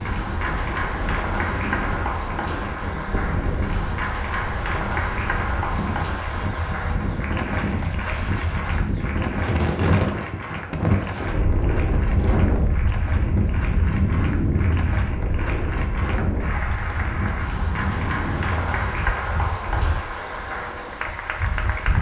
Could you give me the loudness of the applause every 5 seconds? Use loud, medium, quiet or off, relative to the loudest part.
loud, loud, medium, loud, loud.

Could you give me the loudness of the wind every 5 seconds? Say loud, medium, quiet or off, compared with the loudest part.
medium, loud, loud, medium, medium.